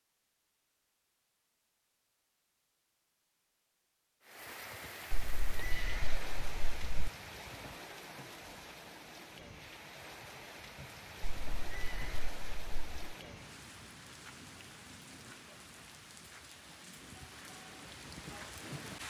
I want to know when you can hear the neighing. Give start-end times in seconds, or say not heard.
5.1-7.1, 11.2-13.2.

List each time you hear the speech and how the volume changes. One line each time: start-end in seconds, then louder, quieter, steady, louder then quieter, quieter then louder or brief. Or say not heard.
not heard.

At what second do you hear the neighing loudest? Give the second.
6 s.